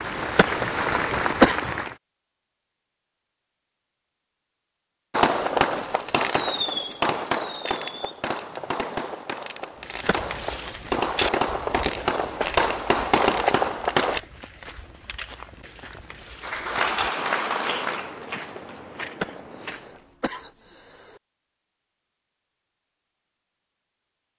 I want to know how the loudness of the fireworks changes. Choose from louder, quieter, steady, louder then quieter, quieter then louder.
quieter then louder.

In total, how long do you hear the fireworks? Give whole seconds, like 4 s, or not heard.
9 s.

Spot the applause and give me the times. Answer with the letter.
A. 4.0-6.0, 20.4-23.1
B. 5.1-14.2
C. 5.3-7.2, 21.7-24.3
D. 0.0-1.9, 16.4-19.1
D.